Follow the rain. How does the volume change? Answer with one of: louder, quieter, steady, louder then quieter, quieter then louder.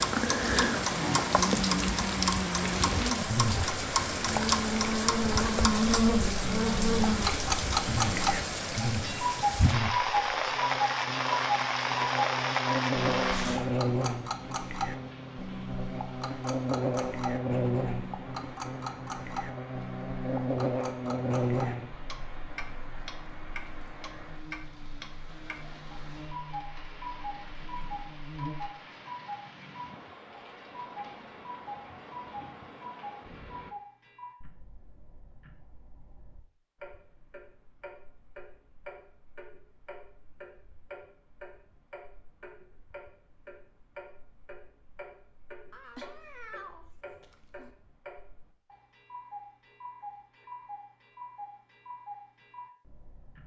quieter.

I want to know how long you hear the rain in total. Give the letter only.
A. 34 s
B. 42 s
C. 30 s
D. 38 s
A.